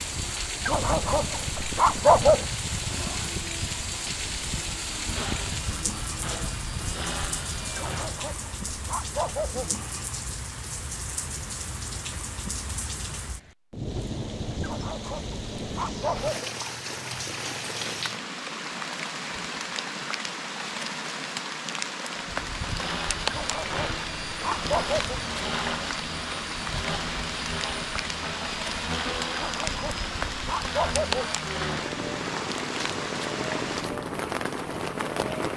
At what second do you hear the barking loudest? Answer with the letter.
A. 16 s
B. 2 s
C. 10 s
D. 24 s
B.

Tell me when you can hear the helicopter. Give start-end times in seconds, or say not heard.
0.0-8.2, 22.3-35.5.